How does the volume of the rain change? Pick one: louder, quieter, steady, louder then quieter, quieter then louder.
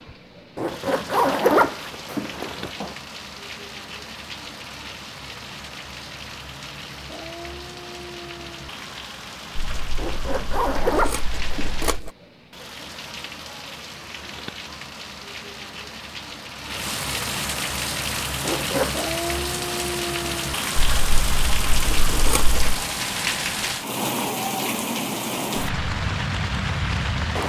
louder.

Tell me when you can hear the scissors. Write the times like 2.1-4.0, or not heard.
9.6-12.1, 20.8-22.9.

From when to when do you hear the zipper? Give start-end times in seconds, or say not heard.
0.6-3.0, 9.9-11.9, 18.4-19.1.